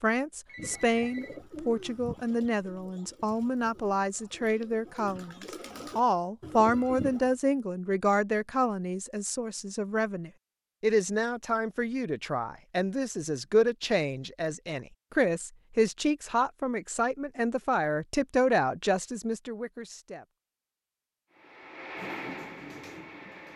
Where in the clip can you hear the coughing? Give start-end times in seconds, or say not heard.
not heard.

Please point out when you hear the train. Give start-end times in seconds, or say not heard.
21.3-23.5.